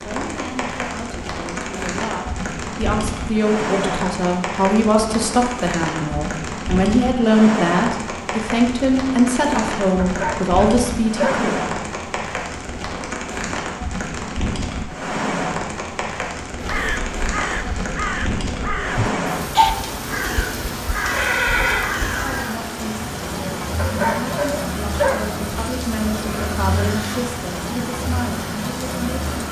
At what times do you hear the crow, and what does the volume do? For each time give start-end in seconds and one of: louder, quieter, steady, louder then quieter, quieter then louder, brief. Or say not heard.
16.6-22.6 louder then quieter.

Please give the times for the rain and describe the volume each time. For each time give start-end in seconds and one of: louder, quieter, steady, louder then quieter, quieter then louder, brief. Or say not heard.
0.0-29.4 steady.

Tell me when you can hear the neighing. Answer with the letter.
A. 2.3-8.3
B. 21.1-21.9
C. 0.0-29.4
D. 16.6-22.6
B.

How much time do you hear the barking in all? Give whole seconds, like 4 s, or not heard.
3 s.